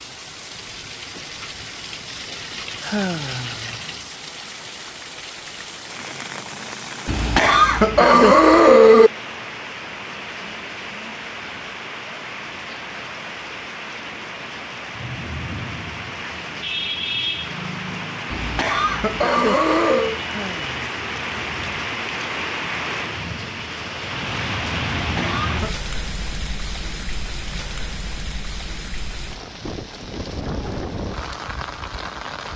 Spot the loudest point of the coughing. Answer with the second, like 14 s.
9 s.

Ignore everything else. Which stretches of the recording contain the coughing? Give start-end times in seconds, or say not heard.
7.0-9.1, 18.3-20.2, 25.0-25.8.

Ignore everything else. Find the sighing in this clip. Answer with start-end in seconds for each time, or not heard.
2.8-3.8, 20.2-21.0.